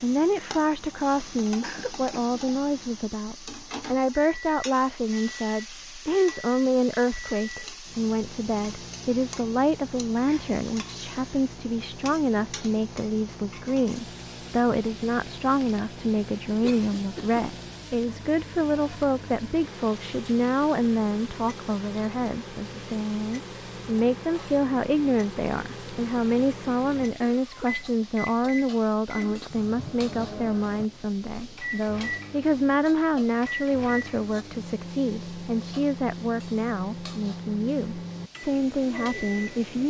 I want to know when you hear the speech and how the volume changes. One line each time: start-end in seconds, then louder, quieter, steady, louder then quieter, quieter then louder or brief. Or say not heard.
0.0-39.8 steady.